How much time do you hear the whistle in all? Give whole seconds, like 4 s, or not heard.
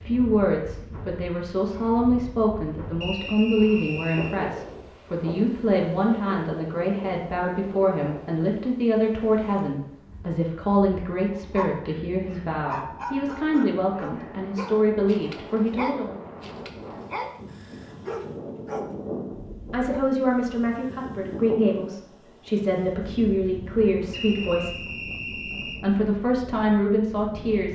3 s.